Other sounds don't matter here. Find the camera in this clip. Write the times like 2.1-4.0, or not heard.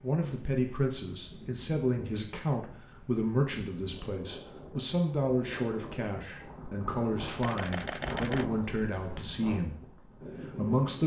7.4-9.3.